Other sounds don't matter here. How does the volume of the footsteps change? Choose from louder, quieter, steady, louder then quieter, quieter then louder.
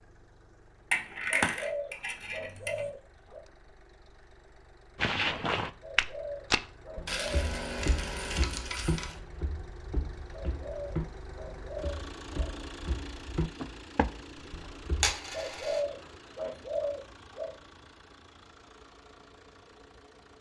quieter then louder.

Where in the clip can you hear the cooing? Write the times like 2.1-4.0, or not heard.
1.3-3.4, 5.8-7.5, 10.3-12.5, 15.3-17.5.